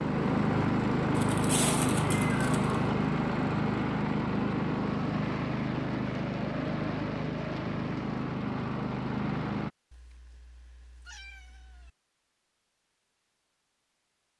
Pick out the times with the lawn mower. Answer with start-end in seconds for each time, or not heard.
0.0-9.7.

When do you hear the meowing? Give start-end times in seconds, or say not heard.
1.1-2.8, 9.9-11.9.